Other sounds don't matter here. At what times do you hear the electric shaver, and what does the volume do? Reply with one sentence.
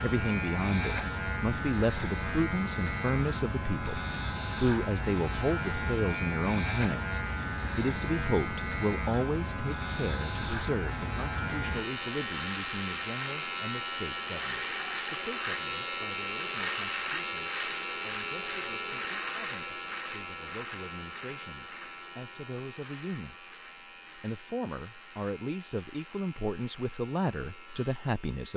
You can hear the electric shaver from 0.0 to 28.5 s, getting quieter.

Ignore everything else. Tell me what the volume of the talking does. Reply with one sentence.
The loudness of the talking goes down, then up.